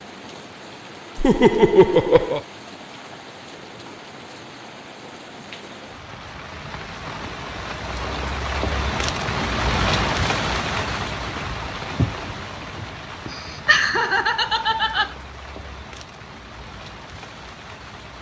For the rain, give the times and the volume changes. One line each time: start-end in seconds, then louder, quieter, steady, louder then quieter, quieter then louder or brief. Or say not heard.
0.0-18.1 louder then quieter.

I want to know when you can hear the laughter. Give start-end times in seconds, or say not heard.
1.1-2.4, 13.3-15.1.